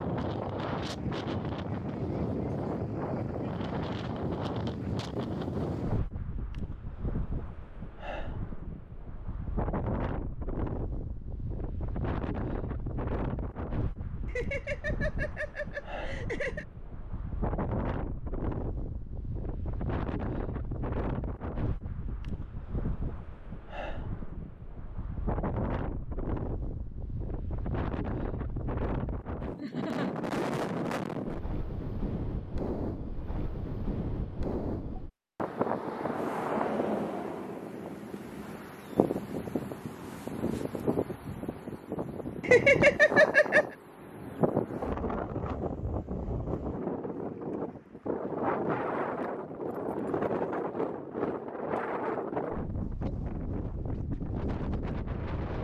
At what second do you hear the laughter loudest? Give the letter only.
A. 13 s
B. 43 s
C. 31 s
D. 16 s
B.